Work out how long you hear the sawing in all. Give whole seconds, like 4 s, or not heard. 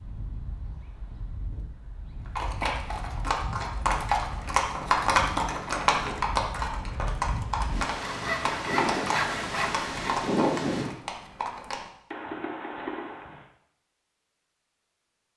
2 s.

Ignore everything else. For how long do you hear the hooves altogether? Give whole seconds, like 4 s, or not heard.
11 s.